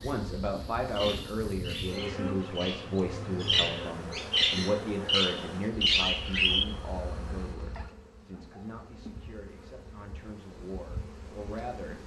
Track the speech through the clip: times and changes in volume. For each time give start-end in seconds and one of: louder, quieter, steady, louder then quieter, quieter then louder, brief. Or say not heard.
0.0-12.0 quieter.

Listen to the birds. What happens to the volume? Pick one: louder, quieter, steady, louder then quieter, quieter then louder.
louder.